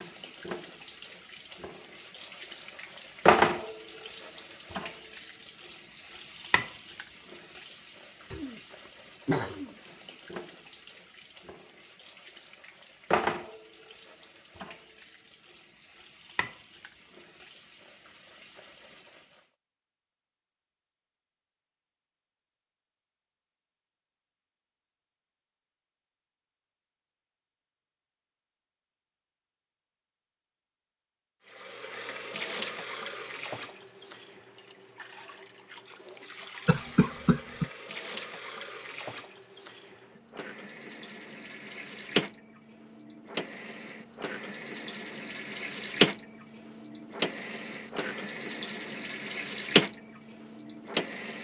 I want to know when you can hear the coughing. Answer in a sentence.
The coughing can be heard from 8.3 to 9.8 s and from 36.6 to 37.6 s.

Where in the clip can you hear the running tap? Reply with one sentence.
You can hear the running tap from 0.0 to 19.4 s and from 31.4 to 51.3 s.